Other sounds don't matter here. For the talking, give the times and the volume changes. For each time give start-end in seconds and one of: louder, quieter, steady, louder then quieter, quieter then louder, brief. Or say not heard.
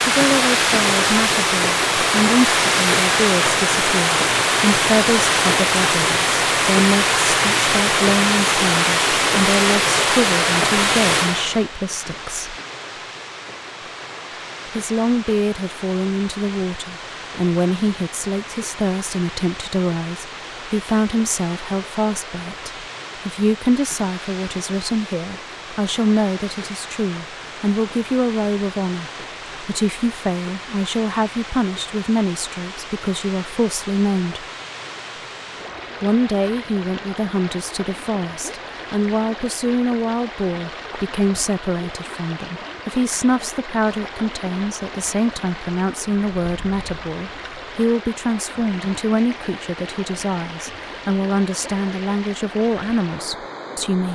0.0-12.6 steady
14.8-34.5 steady
36.0-54.0 steady.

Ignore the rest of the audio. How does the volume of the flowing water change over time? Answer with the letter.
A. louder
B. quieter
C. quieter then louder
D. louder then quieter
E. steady
B.